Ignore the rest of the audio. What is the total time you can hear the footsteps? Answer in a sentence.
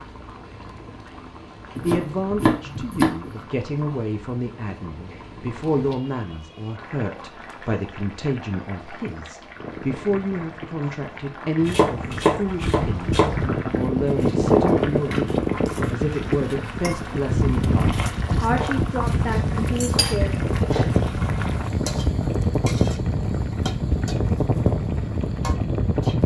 You can't hear the footsteps here.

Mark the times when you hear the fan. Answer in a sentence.
The fan can be heard from 9.6 to 26.2 s.